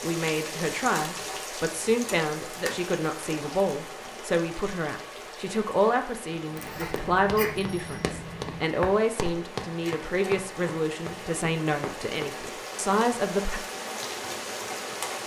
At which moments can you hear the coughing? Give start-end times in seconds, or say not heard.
6.5-7.5.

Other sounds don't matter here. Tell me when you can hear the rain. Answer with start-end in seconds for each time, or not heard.
0.0-15.2.